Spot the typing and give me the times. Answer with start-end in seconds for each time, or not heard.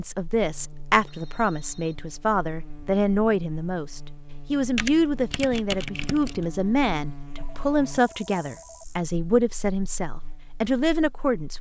4.8-6.5.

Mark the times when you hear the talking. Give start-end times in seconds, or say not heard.
0.0-11.5.